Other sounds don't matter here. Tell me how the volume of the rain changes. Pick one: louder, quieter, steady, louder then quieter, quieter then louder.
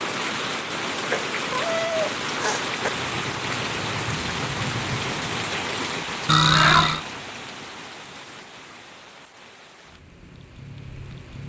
quieter.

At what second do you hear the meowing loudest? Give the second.
7 s.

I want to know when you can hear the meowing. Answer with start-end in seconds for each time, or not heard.
1.1-2.9, 6.2-7.0.